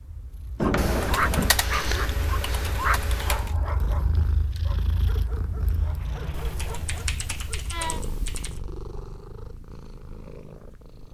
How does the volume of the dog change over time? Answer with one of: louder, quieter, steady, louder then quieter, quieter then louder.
quieter.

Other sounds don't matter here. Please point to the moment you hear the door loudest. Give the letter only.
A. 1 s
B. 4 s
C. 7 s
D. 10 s
A.